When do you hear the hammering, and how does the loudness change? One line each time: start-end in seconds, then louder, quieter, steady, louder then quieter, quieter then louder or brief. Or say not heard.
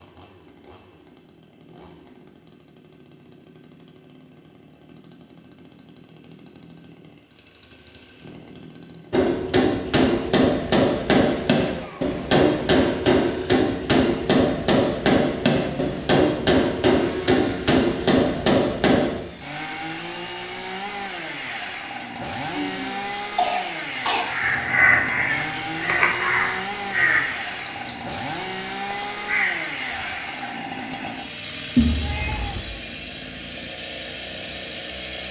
9.1-19.2 steady.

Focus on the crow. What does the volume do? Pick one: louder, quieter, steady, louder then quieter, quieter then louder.
quieter then louder.